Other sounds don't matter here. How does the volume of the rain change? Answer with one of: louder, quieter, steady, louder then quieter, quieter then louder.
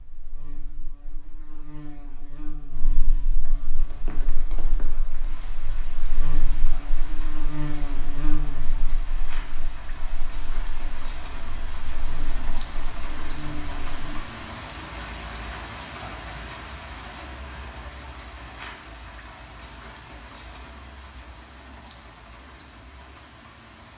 louder then quieter.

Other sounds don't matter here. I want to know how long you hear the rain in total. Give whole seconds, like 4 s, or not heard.
20 s.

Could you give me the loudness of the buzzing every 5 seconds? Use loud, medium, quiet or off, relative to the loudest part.
medium, loud, loud, off, off.